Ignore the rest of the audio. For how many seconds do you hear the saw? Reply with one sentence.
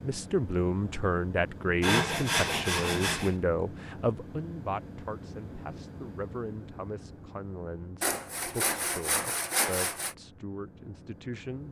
The saw can be heard for 4 seconds in total.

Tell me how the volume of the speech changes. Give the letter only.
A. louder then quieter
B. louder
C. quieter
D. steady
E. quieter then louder
C.